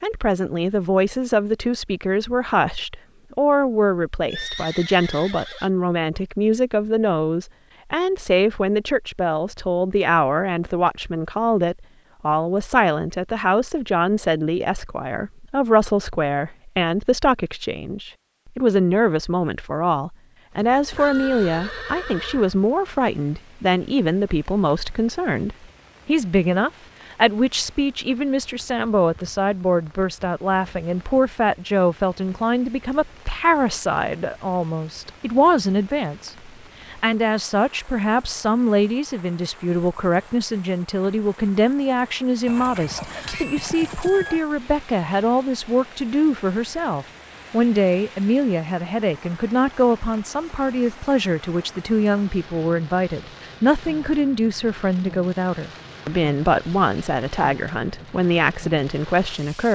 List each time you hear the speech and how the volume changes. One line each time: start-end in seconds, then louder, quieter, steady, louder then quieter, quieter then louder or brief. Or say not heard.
0.0-59.6 steady.